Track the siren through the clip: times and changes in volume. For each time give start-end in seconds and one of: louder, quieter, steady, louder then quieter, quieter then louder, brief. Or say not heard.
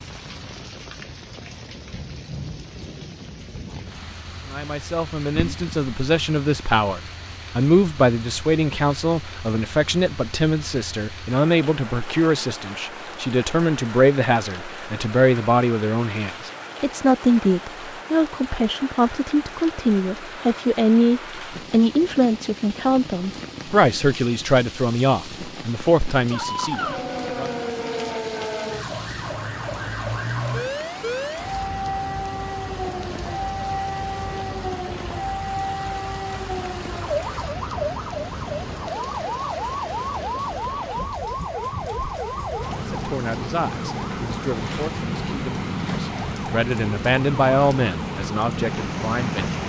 26.3-49.6 steady.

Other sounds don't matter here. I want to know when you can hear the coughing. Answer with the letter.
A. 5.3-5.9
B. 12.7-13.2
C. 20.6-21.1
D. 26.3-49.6
A.